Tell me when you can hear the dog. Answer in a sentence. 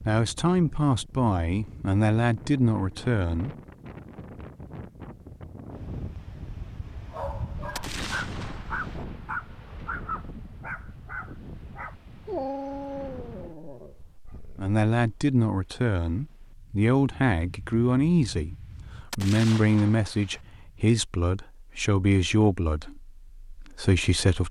You can hear the dog from 7.1 to 14.8 s.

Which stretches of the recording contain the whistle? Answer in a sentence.
You can't hear the whistle here.